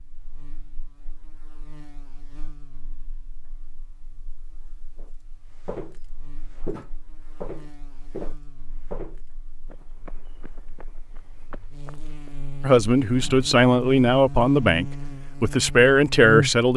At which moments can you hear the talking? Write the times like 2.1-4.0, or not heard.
12.6-16.7.